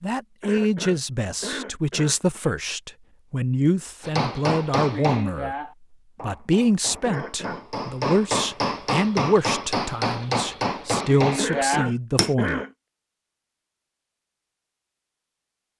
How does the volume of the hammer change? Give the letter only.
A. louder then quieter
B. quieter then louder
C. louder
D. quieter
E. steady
B.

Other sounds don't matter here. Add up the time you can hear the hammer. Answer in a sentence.
You can hear the hammer for 8 seconds altogether.